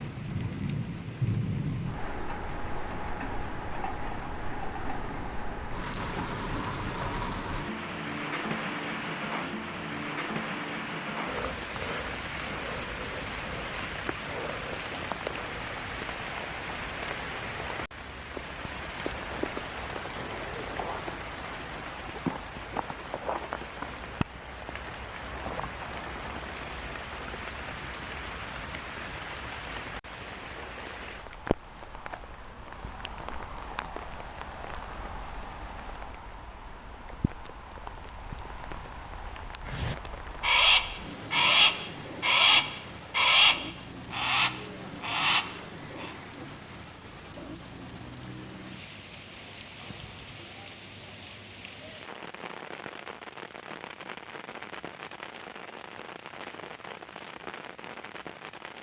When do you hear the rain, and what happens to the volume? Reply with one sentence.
The rain can be heard from 0.0 to 58.7 s, getting quieter.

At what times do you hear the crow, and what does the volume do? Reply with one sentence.
The crow can be heard from 39.6 to 46.1 s, getting quieter.